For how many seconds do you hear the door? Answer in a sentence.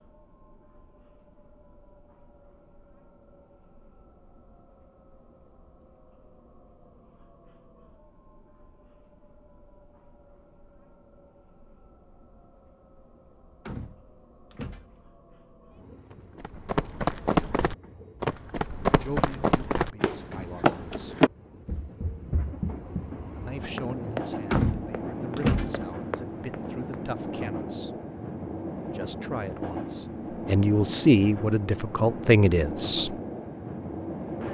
The door can be heard for 3 seconds in total.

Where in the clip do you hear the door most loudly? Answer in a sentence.
The loudest moment of the door is at 25 seconds.